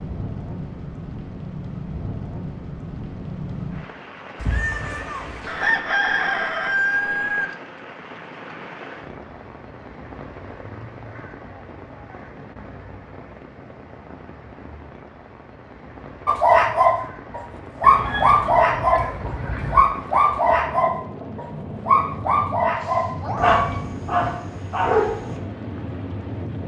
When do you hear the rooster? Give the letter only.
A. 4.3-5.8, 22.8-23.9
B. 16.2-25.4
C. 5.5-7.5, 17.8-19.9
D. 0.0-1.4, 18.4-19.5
C.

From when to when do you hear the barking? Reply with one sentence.
You can hear the barking from 16.2 to 25.4 s.